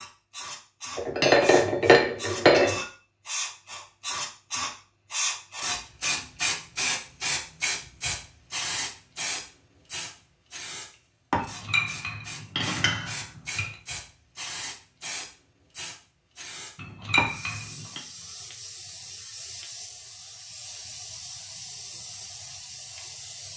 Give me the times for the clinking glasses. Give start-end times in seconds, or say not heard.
0.9-2.9, 11.4-13.7, 16.8-18.0.